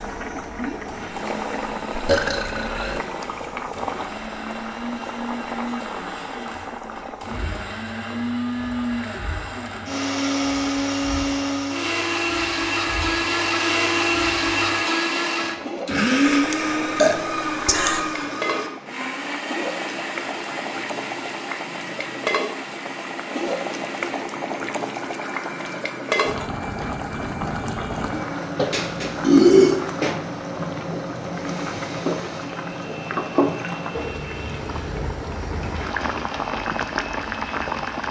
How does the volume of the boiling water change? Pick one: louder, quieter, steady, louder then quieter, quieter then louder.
quieter then louder.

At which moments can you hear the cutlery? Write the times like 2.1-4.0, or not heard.
not heard.